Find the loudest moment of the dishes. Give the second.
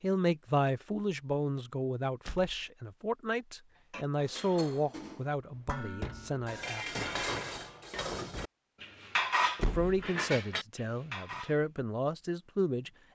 9 s.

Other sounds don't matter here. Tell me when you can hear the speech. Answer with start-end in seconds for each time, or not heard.
0.0-7.0, 9.6-12.9.